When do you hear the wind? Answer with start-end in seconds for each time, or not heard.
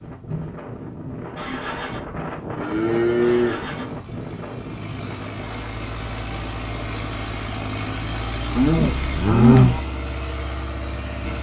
0.0-8.3.